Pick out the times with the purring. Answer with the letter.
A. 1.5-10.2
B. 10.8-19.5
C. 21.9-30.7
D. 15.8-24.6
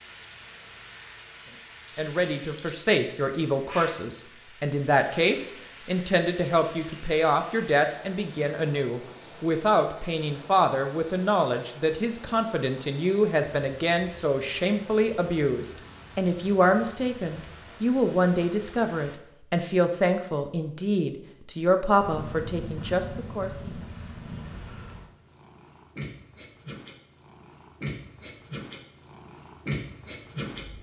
C.